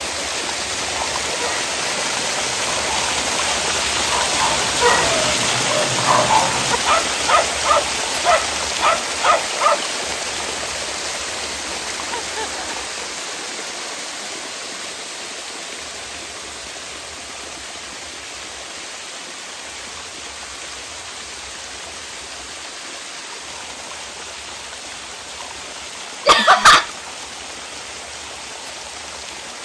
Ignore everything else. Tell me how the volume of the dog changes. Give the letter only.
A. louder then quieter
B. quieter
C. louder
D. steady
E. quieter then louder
C.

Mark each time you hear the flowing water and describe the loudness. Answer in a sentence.
The flowing water can be heard from 0.0 to 29.6 s, getting quieter.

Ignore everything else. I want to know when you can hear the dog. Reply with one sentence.
You can hear the dog from 0.9 to 9.8 s.